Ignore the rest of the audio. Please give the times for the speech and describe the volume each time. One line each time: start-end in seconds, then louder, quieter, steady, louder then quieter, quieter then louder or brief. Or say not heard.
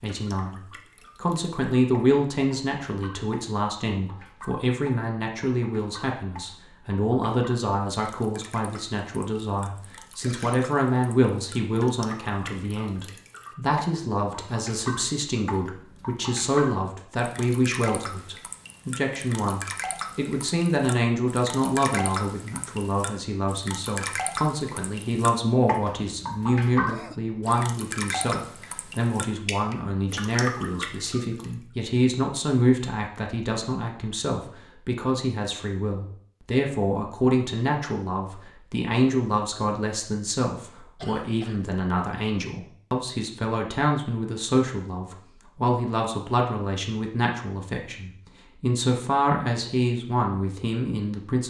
0.0-51.4 steady.